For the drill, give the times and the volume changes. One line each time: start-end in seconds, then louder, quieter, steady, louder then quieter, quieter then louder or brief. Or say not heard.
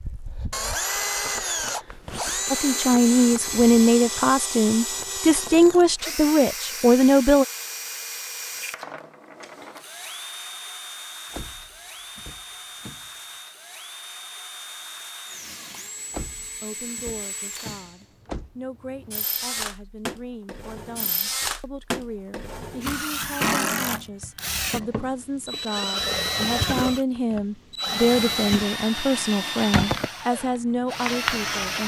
0.0-31.8 quieter then louder.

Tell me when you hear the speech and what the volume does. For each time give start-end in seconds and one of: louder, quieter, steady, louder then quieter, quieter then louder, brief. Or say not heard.
2.5-7.5 steady
16.6-31.8 louder.